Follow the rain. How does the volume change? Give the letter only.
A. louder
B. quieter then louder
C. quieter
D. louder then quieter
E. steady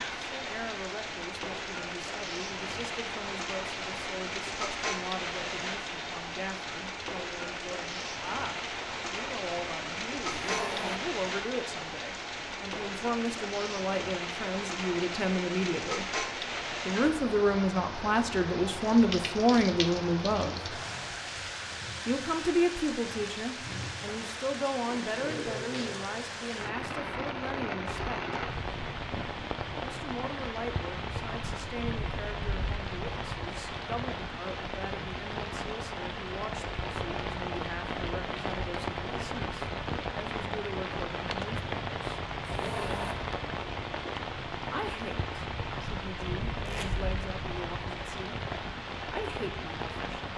E.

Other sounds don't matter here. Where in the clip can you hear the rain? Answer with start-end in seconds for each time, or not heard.
0.0-50.3.